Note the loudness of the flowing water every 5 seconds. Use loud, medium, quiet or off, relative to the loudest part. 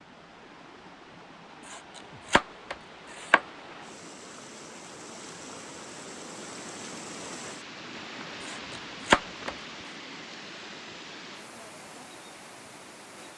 medium, loud, loud.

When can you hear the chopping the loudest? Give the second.
9 s.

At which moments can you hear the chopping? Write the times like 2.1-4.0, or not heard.
1.6-3.4, 8.4-9.5.